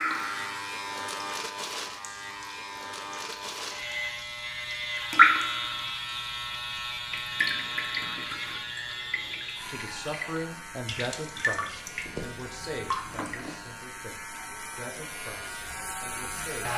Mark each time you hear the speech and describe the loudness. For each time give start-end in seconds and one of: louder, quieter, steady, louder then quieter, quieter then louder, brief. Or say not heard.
9.7-16.7 quieter.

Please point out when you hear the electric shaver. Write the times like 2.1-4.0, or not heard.
0.0-16.7.